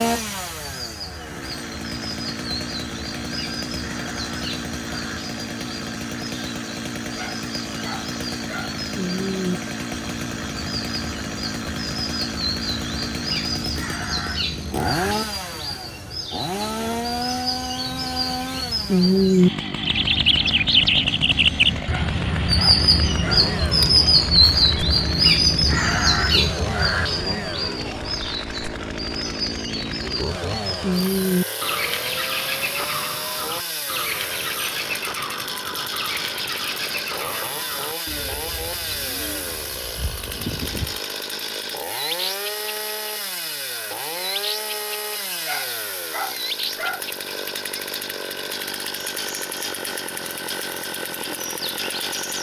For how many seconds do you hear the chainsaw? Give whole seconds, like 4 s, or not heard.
52 s.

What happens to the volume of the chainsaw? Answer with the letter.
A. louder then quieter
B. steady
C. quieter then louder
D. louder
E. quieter
B.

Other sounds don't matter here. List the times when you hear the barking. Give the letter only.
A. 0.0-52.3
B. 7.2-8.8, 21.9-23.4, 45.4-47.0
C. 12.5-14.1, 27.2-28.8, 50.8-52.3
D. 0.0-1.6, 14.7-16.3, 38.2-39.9
B.